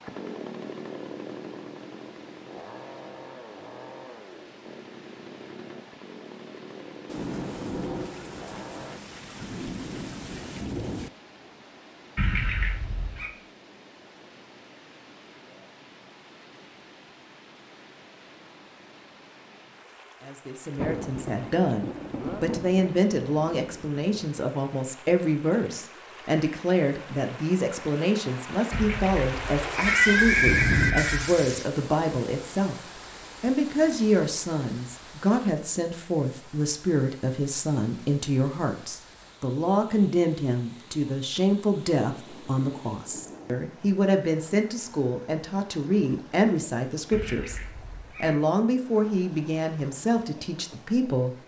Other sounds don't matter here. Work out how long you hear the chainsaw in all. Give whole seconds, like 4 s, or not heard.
9 s.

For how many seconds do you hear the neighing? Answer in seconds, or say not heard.
5 s.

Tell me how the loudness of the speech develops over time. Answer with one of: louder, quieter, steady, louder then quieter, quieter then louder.
steady.